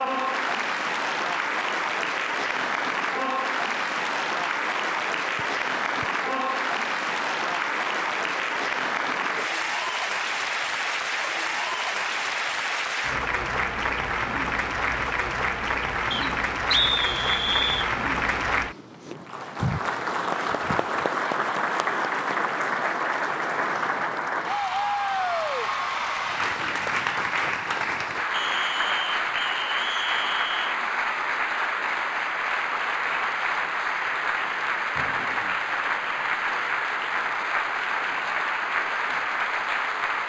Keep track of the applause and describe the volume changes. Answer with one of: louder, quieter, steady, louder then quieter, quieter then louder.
steady.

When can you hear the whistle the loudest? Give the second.
17 s.